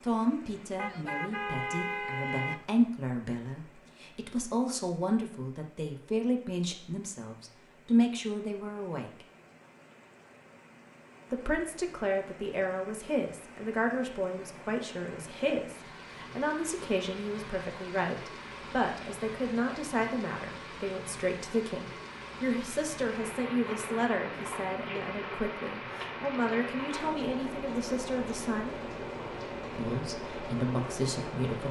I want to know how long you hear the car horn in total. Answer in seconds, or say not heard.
2 s.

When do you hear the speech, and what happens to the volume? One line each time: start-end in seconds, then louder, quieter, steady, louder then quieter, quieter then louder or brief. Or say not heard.
0.0-9.2 louder
11.3-28.8 steady
29.8-31.6 brief.